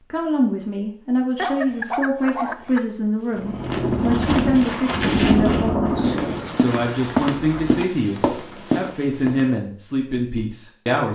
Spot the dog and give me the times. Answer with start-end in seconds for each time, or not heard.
1.4-2.8, 5.8-7.8.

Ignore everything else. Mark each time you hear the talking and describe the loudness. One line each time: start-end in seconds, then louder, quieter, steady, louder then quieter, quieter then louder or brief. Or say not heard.
0.1-11.0 steady.